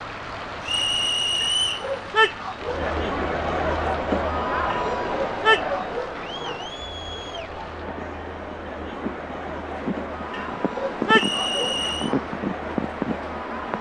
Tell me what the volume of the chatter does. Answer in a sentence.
The volume of the chatter goes down.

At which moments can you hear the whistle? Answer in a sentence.
You can hear the whistle from 0.6 to 1.9 s and from 11.1 to 12.2 s.